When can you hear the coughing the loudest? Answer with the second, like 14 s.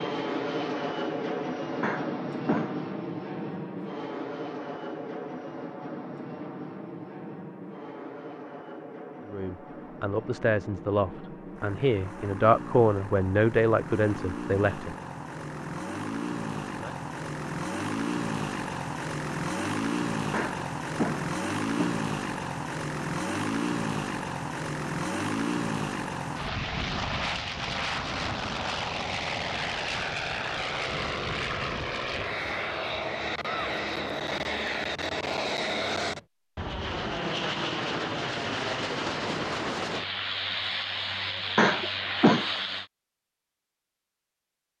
42 s.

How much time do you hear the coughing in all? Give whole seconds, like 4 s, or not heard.
4 s.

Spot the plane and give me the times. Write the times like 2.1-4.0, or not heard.
0.0-42.9.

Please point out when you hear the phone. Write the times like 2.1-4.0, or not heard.
not heard.